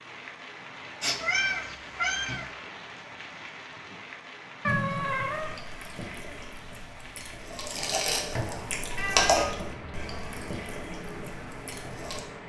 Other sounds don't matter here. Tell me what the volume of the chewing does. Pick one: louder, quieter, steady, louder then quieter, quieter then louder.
louder then quieter.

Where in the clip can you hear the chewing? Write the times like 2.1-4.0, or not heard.
4.8-12.2.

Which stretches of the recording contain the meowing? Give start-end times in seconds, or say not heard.
1.0-2.5, 4.7-5.5, 8.9-10.5.